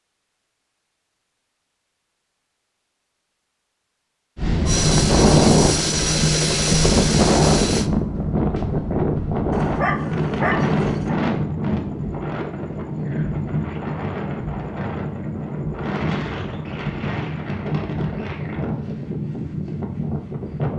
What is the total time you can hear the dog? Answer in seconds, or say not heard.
2 s.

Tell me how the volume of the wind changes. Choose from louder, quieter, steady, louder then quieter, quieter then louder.
quieter.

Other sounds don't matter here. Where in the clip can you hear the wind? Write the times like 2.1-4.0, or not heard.
4.3-20.7.